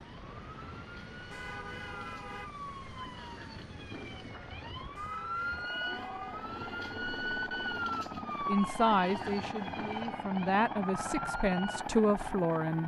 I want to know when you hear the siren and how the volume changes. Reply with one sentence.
You can hear the siren from 0.0 to 12.8 s, getting louder then quieter.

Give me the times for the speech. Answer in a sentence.
You can hear the speech from 8.4 to 12.8 s.